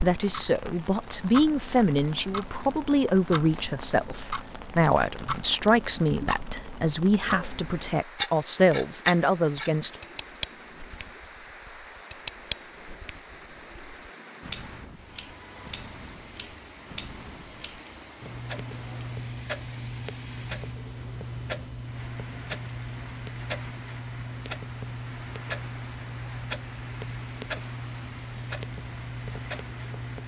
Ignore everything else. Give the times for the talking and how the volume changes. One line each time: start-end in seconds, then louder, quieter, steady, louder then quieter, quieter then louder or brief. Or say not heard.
0.0-10.0 steady.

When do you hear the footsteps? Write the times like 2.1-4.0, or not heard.
not heard.